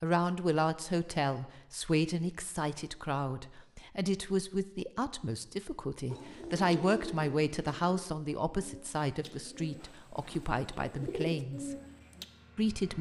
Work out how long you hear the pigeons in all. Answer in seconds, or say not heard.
6 s.